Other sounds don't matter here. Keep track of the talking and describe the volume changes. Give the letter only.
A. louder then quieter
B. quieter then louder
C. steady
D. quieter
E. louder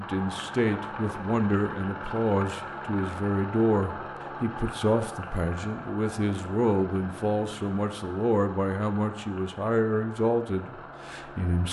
C.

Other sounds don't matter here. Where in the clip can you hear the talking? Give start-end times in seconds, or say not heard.
0.0-11.6.